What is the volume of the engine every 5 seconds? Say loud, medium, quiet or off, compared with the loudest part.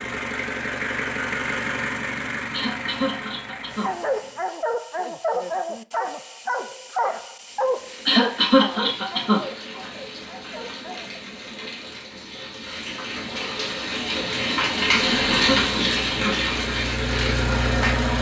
loud, off, off, loud.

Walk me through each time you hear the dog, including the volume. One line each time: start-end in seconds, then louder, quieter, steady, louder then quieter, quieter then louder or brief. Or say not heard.
3.7-11.2 quieter.